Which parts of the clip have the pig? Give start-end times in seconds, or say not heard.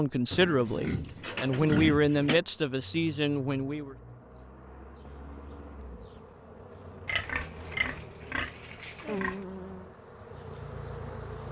0.3-2.4, 7.0-9.4.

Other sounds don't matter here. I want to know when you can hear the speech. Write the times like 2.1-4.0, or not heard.
0.0-4.0.